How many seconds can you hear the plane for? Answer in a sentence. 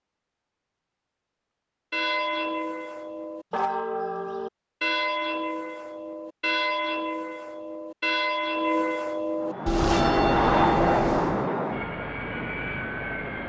You can hear the plane for 4 seconds altogether.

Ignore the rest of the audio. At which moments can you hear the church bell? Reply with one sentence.
The church bell can be heard from 1.9 to 11.4 s.